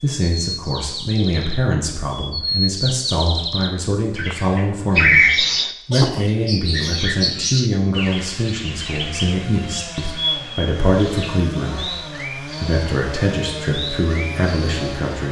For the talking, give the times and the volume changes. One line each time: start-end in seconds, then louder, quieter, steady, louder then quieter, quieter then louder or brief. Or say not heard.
0.0-5.2 steady
5.8-15.2 steady.